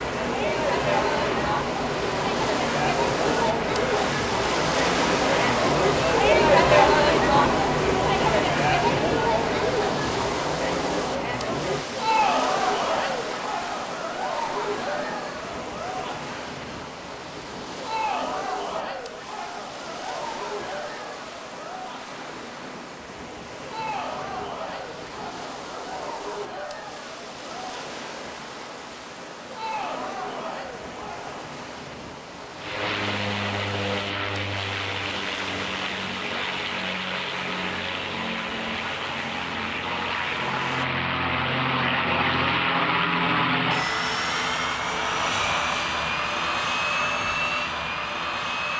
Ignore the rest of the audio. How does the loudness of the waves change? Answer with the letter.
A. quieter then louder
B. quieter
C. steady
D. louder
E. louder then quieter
B.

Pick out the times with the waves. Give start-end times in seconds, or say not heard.
0.0-40.9.